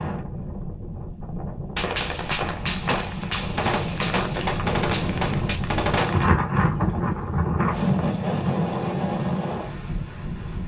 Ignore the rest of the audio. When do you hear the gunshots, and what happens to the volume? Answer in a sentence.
You can hear the gunshots from 1.8 to 6.2 s, at a steady volume.